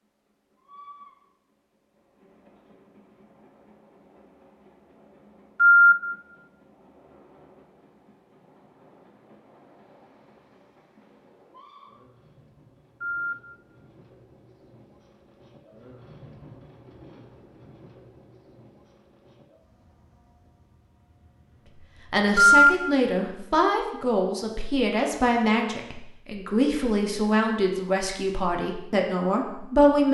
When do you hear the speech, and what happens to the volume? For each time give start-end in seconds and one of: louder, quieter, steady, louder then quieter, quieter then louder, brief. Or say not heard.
22.1-30.1 steady.